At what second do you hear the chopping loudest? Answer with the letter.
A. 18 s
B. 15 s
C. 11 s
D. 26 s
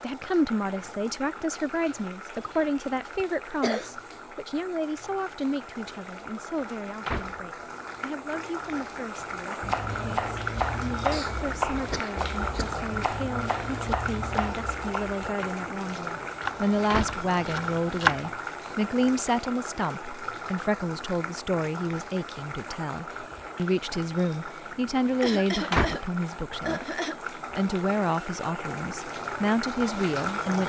A.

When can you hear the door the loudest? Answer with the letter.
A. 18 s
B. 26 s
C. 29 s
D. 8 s
B.